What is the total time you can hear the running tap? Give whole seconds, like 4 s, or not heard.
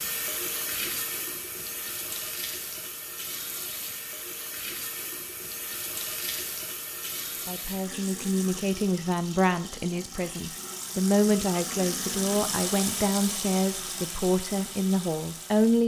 16 s.